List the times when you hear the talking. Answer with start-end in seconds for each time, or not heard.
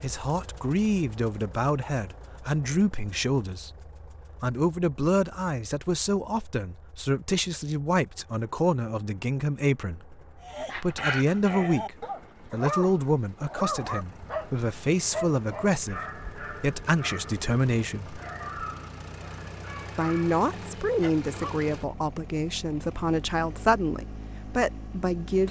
0.0-3.7, 4.4-10.2, 10.8-18.2, 19.9-25.4.